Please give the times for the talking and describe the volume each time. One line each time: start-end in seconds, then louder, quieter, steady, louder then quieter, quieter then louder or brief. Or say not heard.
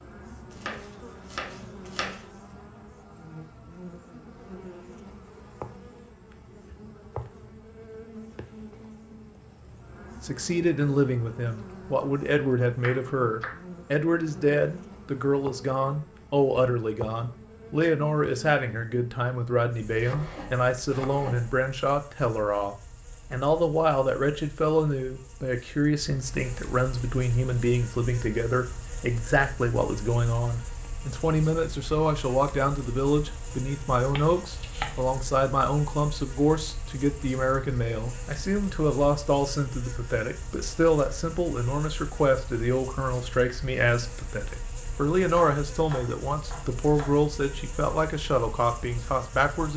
10.2-49.7 steady.